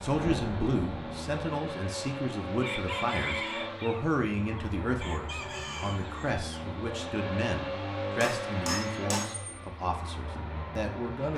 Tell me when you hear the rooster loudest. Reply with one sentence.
The loudest moment of the rooster is at 3 seconds.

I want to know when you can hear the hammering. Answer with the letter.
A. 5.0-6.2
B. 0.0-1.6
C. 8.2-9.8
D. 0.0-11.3
C.